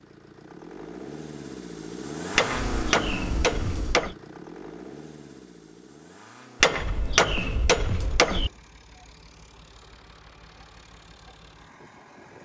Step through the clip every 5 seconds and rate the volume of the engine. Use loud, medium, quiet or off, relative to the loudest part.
loud, quiet, quiet.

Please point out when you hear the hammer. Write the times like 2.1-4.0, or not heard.
2.4-4.2, 6.6-8.5.